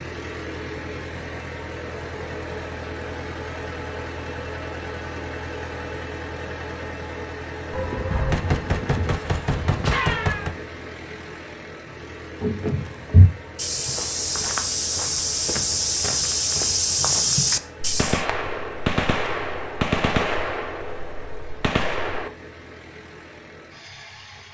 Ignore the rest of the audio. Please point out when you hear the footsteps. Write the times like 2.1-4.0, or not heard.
12.4-18.2.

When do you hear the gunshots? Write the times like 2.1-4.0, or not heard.
7.7-10.5, 17.8-22.3.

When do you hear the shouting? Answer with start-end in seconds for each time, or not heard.
not heard.